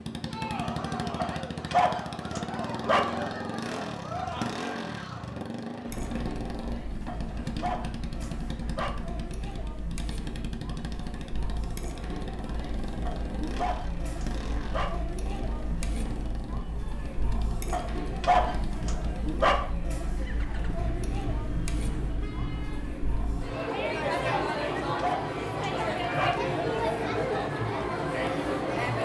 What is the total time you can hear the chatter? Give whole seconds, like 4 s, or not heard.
29 s.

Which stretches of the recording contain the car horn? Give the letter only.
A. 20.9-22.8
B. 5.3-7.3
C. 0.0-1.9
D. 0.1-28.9
A.